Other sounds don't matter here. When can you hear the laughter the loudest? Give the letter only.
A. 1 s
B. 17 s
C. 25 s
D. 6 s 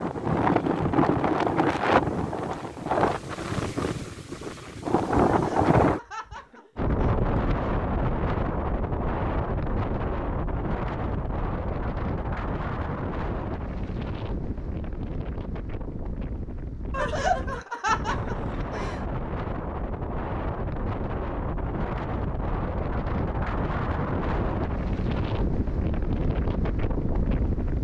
B.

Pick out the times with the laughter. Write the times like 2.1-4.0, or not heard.
5.3-7.2, 16.9-19.1.